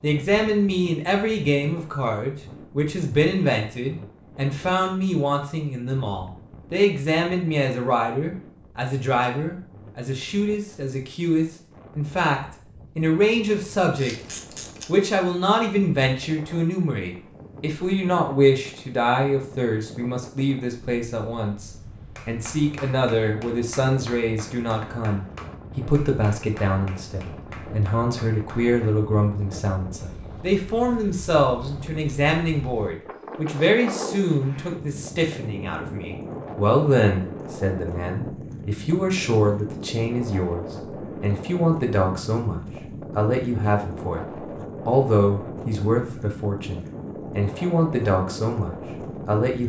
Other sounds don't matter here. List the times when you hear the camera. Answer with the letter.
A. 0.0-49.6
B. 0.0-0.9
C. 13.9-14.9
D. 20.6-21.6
C.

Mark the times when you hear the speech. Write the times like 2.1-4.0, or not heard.
0.0-49.6.